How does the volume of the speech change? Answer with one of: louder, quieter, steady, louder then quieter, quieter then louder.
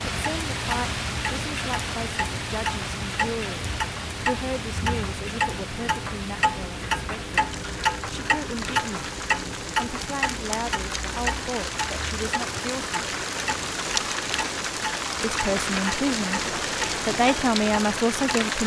louder.